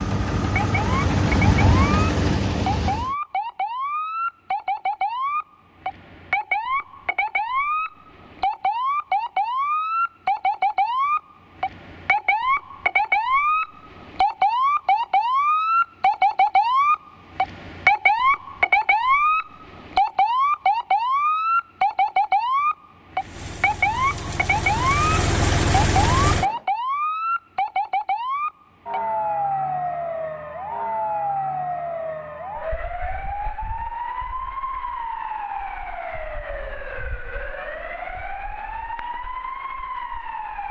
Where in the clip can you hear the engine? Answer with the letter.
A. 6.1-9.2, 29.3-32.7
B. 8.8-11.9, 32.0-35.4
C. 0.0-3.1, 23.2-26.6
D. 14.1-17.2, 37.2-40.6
C.